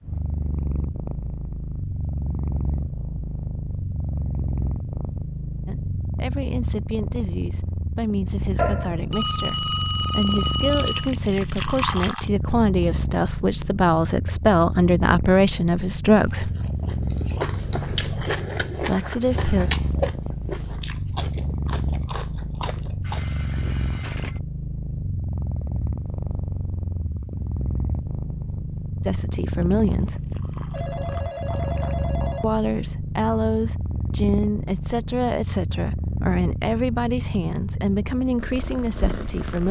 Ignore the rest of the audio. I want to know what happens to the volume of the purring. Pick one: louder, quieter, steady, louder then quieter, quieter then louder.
steady.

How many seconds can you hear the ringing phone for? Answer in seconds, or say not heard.
6 s.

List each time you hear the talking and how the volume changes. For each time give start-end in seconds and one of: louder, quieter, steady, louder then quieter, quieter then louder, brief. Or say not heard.
5.7-16.5 louder
18.8-19.7 brief
29.1-30.2 brief
32.4-39.6 steady.